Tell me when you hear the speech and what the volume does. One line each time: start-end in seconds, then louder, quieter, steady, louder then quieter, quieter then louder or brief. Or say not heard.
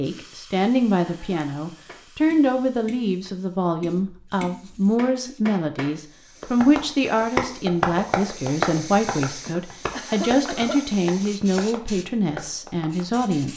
0.0-13.5 steady.